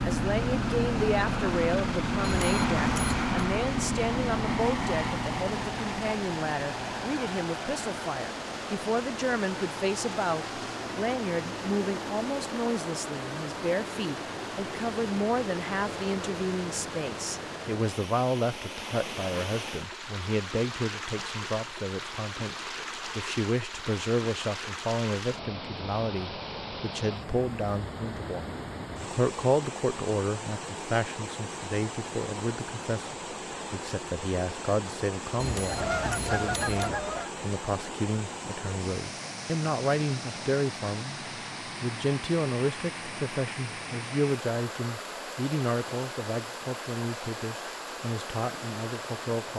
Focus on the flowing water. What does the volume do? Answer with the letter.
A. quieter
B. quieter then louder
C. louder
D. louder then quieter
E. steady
E.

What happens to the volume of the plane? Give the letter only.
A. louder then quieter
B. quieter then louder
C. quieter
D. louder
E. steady
C.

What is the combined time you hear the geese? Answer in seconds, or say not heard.
2 s.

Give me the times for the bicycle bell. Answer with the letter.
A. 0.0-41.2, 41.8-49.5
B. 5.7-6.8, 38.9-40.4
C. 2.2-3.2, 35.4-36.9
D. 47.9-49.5
C.